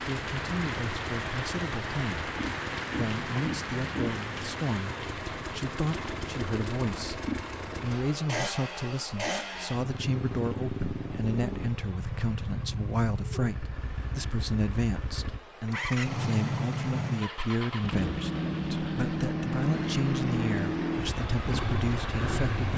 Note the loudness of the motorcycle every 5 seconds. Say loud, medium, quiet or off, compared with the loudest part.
medium, medium, medium, loud, loud.